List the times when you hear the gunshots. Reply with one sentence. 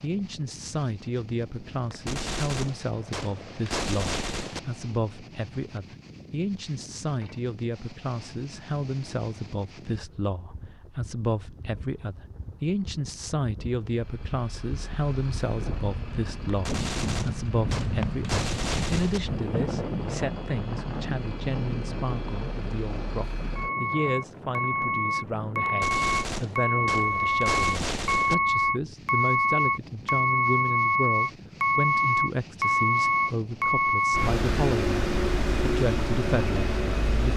You can hear the gunshots from 1.9 to 4.6 s, from 16.4 to 19.2 s and from 25.6 to 28.4 s.